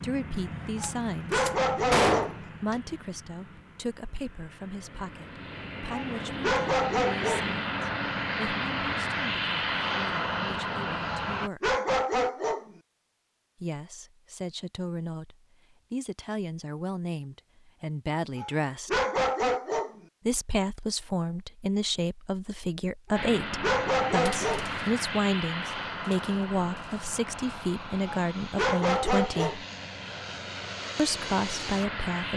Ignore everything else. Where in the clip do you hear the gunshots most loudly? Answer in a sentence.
The loudest moment of the gunshots is at 2 seconds.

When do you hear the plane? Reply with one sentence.
The plane can be heard from 0.0 to 11.5 s and from 23.1 to 32.3 s.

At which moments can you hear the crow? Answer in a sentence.
You can't hear the crow here.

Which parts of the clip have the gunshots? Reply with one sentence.
The gunshots can be heard from 0.8 to 2.8 s, from 24.2 to 24.9 s and from 25.6 to 26.3 s.